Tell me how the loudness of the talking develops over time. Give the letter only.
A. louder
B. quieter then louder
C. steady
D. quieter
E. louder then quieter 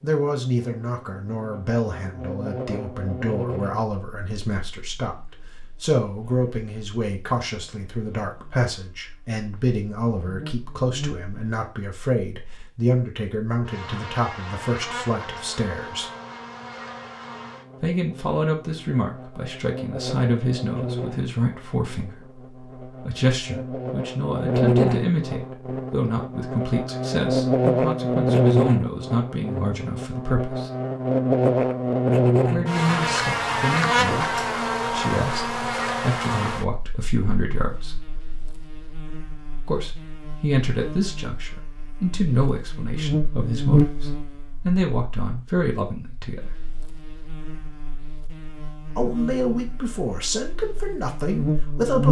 C.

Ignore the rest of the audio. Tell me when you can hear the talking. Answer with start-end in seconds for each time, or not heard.
0.0-16.1, 17.8-30.7, 32.5-38.0, 39.6-46.5, 49.0-52.0.